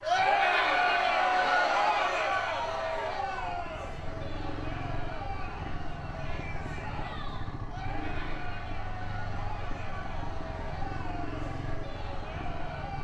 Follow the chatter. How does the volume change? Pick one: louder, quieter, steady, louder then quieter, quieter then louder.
quieter.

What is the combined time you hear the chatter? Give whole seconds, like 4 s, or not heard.
13 s.